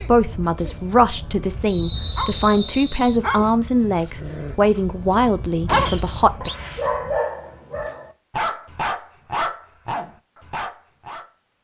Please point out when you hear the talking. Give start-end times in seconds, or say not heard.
0.0-6.5.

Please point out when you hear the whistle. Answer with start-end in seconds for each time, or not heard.
1.7-3.2, 5.8-6.5.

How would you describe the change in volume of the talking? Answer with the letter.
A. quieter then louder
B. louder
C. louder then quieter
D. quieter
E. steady
E.